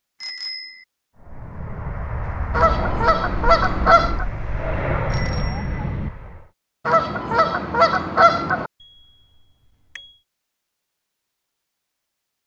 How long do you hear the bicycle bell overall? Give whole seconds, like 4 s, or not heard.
3 s.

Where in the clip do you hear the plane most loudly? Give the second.
5 s.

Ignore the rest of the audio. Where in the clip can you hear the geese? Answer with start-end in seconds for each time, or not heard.
2.5-4.2, 6.8-8.7.